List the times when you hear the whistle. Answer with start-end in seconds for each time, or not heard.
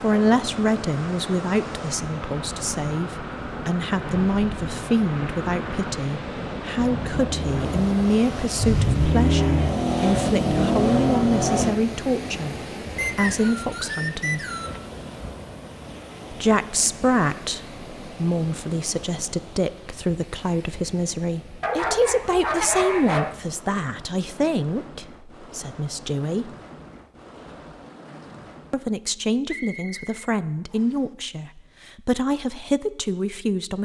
12.9-14.8, 29.4-31.1.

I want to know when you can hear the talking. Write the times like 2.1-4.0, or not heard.
0.0-12.6, 13.2-14.4, 16.3-26.5, 28.7-33.8.